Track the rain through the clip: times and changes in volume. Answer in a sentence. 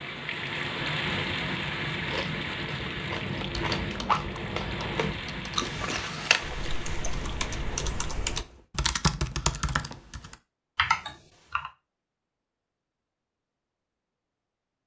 The rain can be heard from 0.0 to 8.7 s, getting quieter.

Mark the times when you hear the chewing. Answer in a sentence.
The chewing can be heard from 2.0 to 7.3 s.